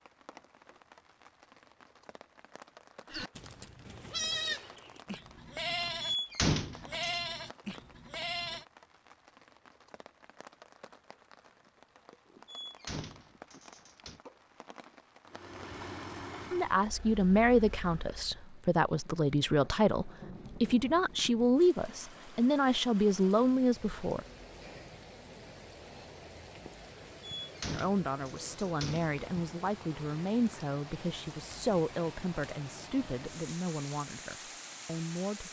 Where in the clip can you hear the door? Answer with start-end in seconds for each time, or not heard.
6.0-7.2, 12.4-14.2, 27.2-29.2.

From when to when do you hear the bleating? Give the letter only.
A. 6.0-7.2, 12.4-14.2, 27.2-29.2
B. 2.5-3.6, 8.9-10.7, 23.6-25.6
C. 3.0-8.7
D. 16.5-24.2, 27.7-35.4
C.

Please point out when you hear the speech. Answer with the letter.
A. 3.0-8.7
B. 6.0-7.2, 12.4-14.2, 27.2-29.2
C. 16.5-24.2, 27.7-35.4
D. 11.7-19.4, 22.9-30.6
C.